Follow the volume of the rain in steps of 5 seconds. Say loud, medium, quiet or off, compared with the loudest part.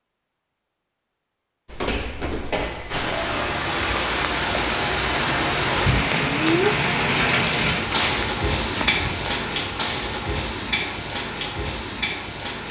loud, loud, medium.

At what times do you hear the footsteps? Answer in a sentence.
You can hear the footsteps from 1.6 to 9.4 s.